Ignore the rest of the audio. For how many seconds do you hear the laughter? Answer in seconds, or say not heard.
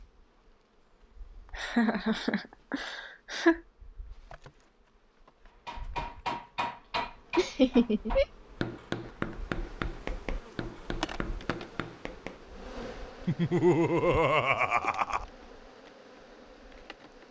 5 s.